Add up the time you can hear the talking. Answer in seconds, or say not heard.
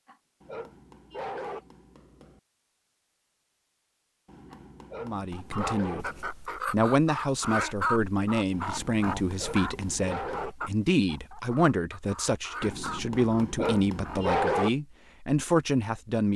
11 s.